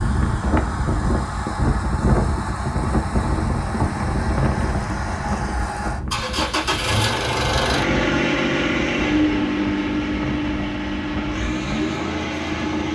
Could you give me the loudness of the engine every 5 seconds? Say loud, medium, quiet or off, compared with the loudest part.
medium, loud, loud.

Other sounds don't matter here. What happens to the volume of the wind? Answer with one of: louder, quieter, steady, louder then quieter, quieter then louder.
quieter.